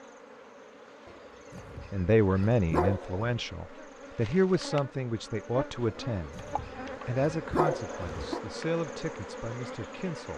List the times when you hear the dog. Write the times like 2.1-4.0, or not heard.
1.1-3.4, 5.8-8.4.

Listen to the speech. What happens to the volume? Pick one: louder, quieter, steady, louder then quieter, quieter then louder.
quieter.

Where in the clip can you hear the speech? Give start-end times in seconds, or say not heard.
1.9-6.5, 7.0-10.3.